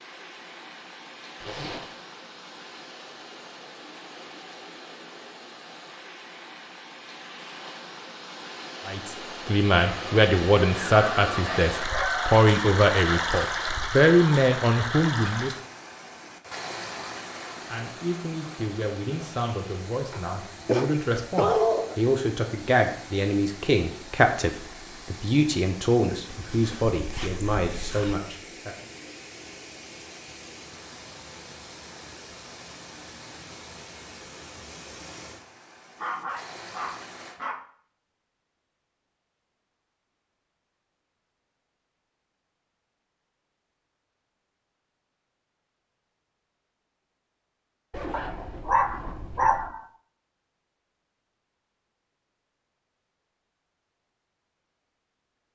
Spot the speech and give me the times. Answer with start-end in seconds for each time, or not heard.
8.8-15.6, 17.6-28.8.